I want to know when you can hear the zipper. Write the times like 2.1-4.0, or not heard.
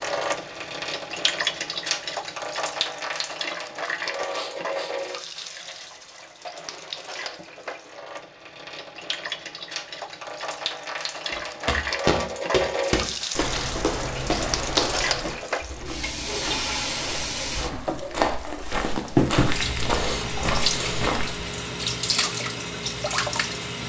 not heard.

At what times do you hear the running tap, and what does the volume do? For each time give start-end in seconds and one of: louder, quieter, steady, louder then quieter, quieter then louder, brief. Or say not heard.
0.0-23.8 quieter then louder.